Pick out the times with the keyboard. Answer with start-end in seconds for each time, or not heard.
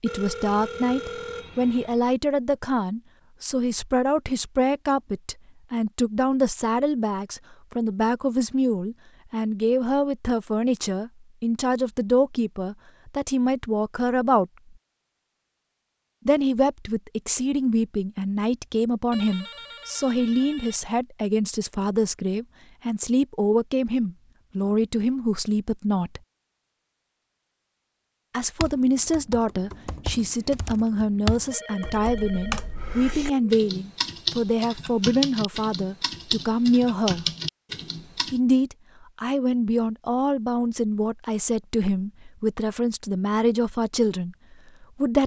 28.6-38.4.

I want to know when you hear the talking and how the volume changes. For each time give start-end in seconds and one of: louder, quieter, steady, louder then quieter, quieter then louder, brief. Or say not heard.
0.0-14.5 steady
16.2-26.2 steady
28.3-37.2 steady
38.3-45.2 steady.